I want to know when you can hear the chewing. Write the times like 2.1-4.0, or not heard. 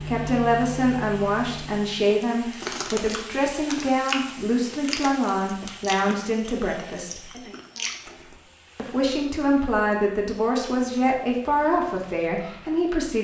2.2-8.4.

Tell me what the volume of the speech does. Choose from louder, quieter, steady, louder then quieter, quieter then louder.
steady.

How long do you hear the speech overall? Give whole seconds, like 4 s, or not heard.
12 s.